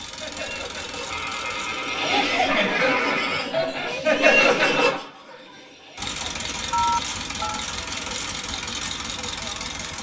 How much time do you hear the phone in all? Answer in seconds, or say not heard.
3 s.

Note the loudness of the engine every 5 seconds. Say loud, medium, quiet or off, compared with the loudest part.
medium, loud.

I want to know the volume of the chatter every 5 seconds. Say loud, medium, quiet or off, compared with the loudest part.
loud, quiet.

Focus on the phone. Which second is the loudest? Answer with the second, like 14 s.
7 s.